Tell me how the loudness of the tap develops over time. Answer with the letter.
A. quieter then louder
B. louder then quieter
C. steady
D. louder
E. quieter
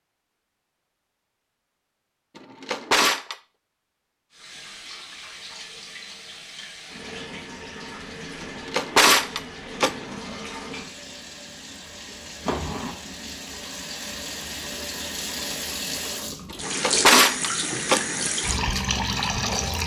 D.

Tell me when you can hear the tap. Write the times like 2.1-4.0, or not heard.
4.3-19.8.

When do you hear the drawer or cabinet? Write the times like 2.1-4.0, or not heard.
2.4-3.4, 8.4-10.2, 16.5-18.3.